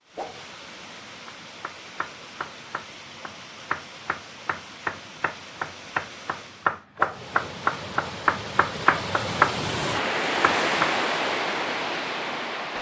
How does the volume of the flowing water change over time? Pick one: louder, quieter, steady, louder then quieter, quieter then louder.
louder.